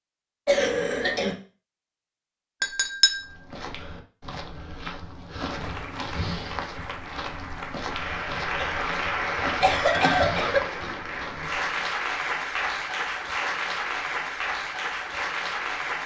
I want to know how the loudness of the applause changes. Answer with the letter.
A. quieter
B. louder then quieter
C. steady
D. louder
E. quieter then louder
D.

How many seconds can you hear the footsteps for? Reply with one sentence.
The footsteps can be heard for 9 seconds in total.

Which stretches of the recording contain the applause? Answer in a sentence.
You can hear the applause from 5.5 to 16.0 s.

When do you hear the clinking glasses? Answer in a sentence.
You can hear the clinking glasses from 2.6 to 3.4 s and from 9.8 to 11.5 s.